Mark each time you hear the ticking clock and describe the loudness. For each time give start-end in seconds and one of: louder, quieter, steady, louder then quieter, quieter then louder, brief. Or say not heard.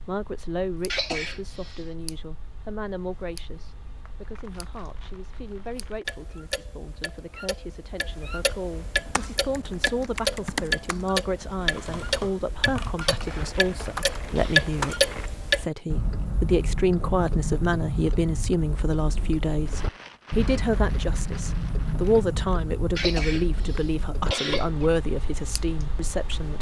0.0-26.5 louder then quieter.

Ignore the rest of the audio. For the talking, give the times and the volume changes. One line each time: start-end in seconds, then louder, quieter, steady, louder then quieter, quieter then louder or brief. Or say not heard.
0.1-26.5 louder.